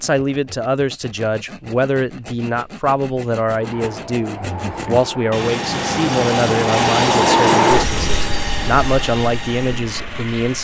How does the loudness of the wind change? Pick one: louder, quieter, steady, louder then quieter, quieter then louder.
louder then quieter.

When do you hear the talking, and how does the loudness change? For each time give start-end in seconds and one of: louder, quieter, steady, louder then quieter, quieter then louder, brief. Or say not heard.
0.0-10.5 steady.